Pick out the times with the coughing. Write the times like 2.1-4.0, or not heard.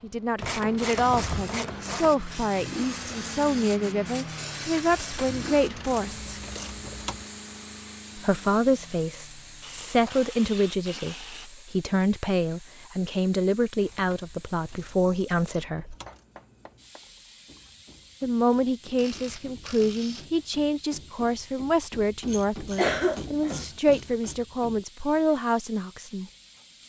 22.8-23.6.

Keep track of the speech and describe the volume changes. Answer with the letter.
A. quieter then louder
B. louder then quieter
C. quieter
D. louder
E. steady
E.